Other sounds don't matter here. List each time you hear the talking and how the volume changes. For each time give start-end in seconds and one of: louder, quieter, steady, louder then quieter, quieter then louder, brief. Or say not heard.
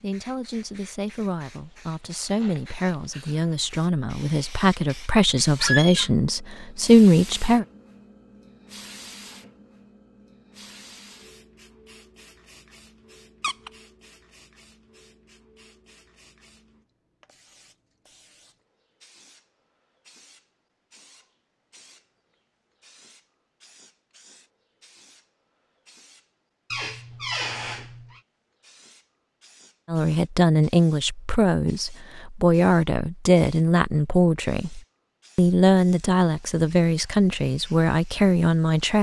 0.0-7.7 louder
29.9-38.9 steady.